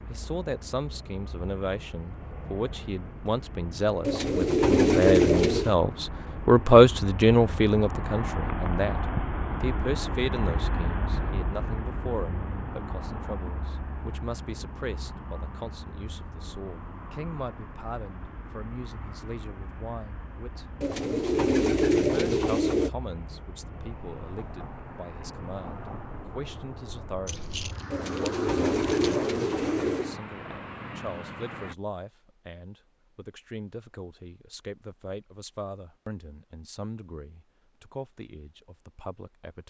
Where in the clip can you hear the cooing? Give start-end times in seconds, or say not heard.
4.0-5.8, 20.8-22.9, 27.9-30.1.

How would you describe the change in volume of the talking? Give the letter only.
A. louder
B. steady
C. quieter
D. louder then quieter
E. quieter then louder
C.